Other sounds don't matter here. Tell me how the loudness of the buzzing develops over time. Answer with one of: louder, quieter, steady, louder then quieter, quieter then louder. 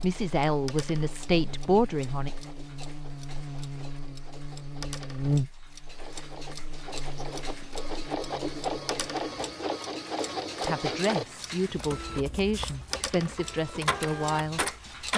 louder then quieter.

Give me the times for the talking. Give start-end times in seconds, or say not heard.
0.0-2.3, 10.6-15.1.